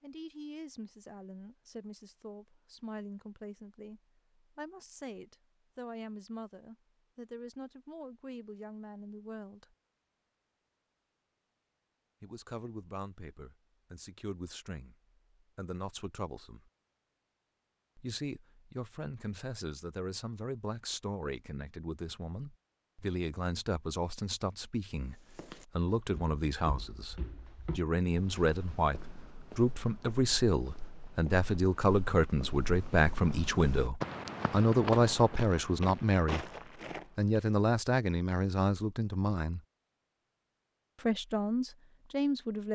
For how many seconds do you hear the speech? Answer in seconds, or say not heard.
37 s.